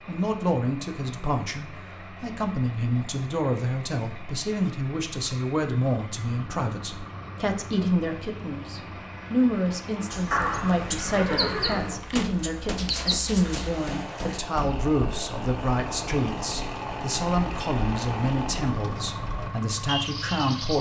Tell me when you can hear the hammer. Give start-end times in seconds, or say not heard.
12.2-14.8.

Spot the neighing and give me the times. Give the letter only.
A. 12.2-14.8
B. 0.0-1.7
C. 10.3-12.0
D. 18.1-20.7
C.